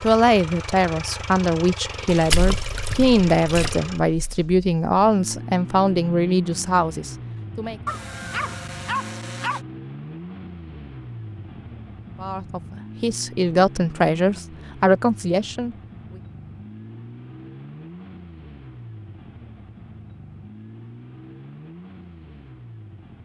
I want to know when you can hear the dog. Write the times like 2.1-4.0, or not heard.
7.8-9.6.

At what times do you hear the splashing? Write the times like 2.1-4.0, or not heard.
2.1-3.8.